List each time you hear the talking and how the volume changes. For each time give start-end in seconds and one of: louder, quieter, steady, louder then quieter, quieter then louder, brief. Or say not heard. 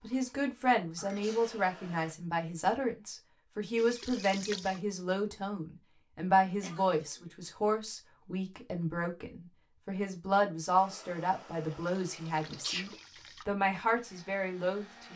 0.0-15.1 steady.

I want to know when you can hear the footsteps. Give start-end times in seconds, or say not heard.
not heard.